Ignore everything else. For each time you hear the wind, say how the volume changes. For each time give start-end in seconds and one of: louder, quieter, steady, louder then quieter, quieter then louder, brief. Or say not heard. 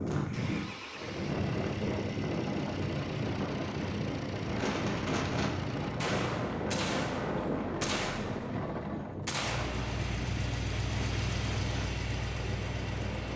0.0-13.3 quieter.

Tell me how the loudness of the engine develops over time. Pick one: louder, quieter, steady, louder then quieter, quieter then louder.
louder.